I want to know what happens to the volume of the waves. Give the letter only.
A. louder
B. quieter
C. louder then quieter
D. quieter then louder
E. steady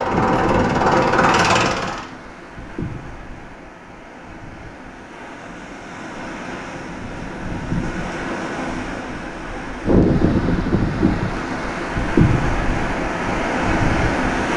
D.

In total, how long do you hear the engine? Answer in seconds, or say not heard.
2 s.